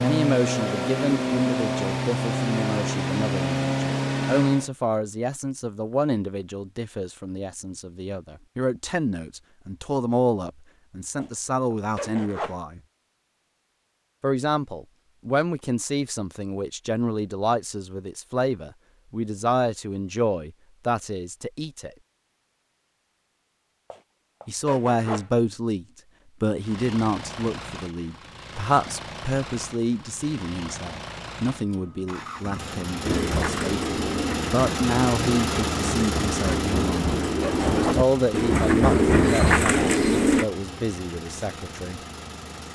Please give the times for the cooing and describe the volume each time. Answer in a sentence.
You can hear the cooing from 33.0 to 40.5 s, getting louder.